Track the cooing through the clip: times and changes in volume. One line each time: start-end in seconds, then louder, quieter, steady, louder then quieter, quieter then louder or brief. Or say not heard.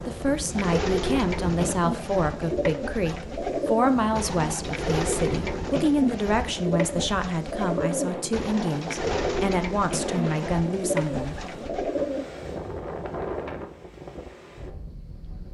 0.5-12.2 steady.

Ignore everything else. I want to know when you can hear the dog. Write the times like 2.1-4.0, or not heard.
not heard.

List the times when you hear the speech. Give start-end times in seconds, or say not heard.
0.1-11.4.